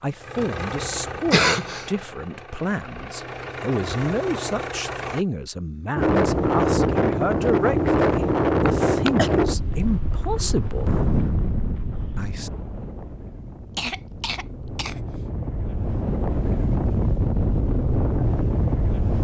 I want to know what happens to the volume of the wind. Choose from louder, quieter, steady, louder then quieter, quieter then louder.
quieter then louder.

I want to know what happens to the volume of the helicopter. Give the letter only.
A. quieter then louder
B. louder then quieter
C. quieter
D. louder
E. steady
A.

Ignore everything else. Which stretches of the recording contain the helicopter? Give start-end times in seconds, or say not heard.
0.0-5.2.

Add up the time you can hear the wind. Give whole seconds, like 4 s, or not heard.
13 s.